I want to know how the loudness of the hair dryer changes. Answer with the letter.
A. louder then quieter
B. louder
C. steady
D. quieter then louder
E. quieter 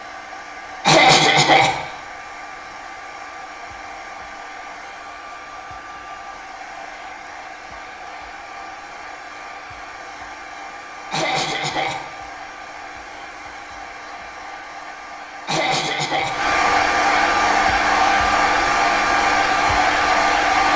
B.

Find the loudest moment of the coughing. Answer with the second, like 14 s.
1 s.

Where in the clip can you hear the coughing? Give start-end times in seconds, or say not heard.
0.8-1.8, 11.1-12.1, 15.4-16.4.